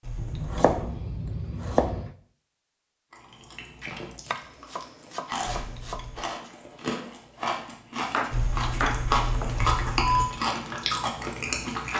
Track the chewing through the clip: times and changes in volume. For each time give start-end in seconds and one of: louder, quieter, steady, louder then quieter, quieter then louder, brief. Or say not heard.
3.1-11.9 louder.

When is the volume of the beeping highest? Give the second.
10 s.